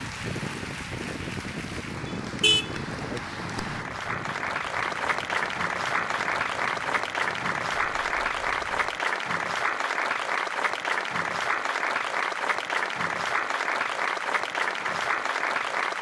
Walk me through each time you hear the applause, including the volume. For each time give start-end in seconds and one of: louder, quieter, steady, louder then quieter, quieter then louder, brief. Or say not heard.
0.0-15.9 louder.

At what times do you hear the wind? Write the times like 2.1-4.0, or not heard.
0.0-9.0.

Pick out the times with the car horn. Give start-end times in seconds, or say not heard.
2.0-3.2.